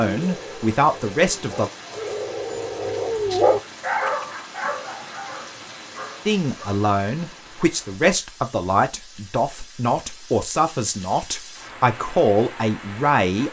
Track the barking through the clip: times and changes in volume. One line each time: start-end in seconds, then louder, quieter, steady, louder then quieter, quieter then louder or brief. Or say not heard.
0.1-6.7 louder then quieter.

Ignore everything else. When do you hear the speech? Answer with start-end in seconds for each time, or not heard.
0.0-1.7, 6.2-13.4.